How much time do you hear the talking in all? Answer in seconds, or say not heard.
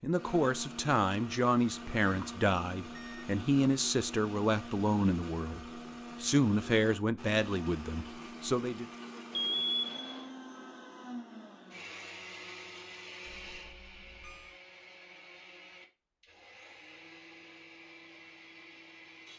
9 s.